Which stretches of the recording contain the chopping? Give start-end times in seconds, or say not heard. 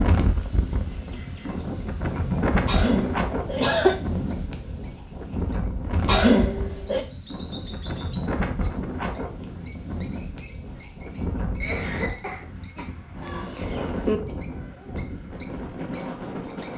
not heard.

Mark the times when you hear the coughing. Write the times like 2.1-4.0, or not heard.
2.6-4.0, 6.0-7.0, 11.6-12.8.